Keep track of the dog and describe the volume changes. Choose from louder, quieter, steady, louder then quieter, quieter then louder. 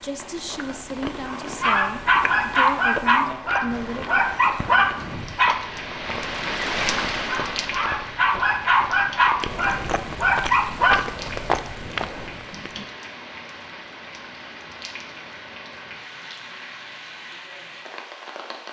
steady.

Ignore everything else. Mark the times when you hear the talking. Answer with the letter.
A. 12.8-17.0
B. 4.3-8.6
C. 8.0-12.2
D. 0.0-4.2
D.